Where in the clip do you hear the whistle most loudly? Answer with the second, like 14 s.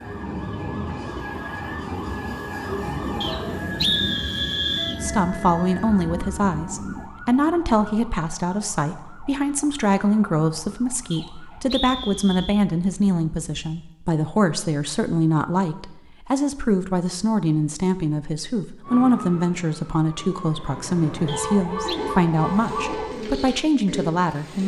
4 s.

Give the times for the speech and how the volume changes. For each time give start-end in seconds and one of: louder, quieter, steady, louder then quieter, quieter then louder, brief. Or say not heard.
5.0-24.6 steady.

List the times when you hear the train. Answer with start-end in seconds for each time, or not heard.
0.0-7.1.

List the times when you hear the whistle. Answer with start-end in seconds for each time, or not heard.
3.2-5.0, 11.1-12.7, 21.2-22.0.